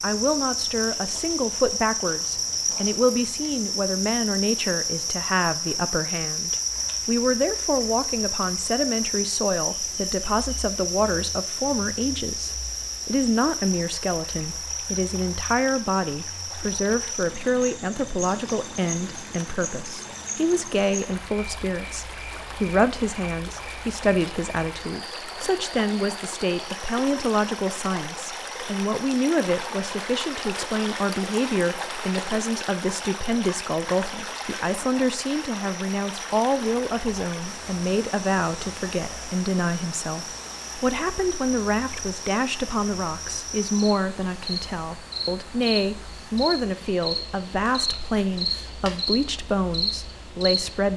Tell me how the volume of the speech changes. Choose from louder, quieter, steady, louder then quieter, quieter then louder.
steady.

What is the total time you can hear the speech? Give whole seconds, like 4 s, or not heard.
51 s.